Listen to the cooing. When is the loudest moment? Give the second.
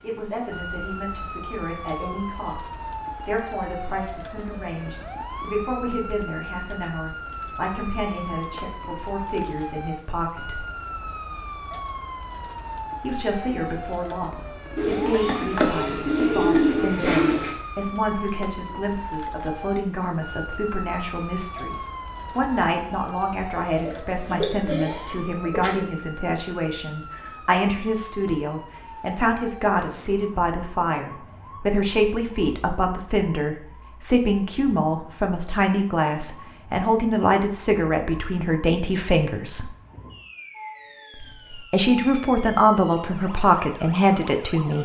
17 s.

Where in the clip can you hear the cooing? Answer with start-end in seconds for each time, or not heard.
14.8-17.6, 23.9-25.9.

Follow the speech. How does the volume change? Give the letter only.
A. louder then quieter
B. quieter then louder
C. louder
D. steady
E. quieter
C.